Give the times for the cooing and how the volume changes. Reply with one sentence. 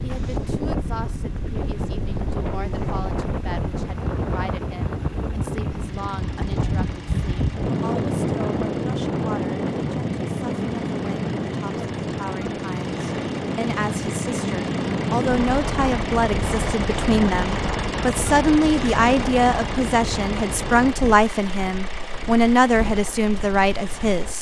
The cooing can't be heard in this clip.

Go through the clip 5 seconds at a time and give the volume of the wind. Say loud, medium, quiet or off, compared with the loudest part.
loud, loud, loud, loud, medium.